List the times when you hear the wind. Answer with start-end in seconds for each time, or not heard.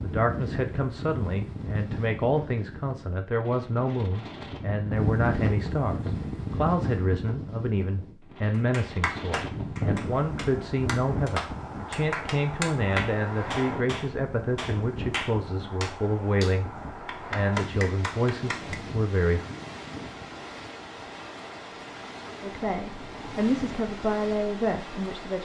0.0-25.4.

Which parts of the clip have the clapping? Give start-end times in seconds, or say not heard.
8.5-18.8.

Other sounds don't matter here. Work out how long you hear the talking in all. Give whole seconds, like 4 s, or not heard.
22 s.